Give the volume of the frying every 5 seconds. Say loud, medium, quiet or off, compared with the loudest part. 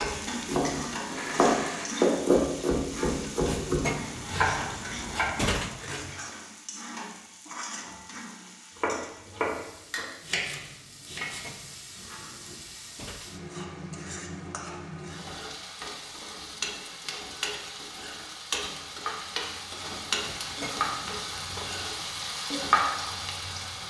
loud, medium, medium, loud, loud.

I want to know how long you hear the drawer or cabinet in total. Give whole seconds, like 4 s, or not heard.
6 s.